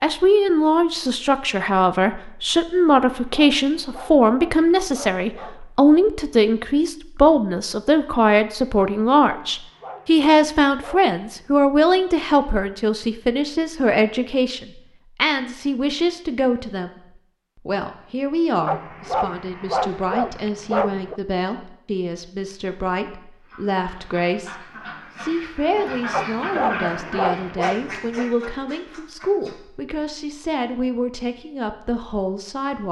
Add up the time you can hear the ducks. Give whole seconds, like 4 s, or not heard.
6 s.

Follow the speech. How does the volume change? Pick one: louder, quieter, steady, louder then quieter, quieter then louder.
quieter.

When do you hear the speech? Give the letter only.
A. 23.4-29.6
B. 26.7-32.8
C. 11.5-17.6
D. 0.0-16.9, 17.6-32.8
D.